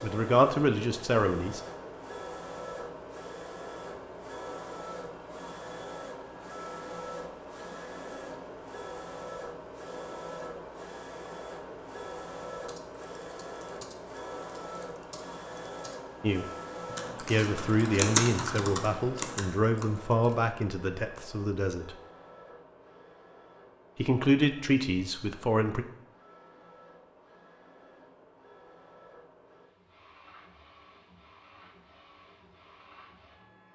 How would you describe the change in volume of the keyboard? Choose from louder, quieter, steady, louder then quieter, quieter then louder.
louder then quieter.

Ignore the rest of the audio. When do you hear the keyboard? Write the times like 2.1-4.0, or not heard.
12.6-16.0, 16.9-20.5.